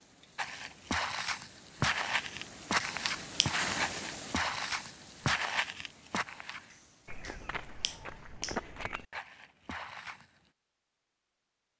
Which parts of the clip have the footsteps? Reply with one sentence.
The footsteps can be heard from 0.3 to 10.5 s.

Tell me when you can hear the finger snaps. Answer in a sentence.
The finger snaps can be heard from 2.2 to 3.5 s and from 6.7 to 8.6 s.